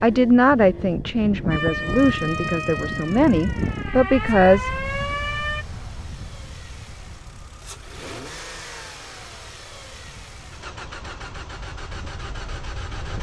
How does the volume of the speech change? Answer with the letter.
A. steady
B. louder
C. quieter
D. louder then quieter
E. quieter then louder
E.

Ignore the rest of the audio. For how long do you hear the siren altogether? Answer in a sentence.
You can hear the siren for 4 seconds altogether.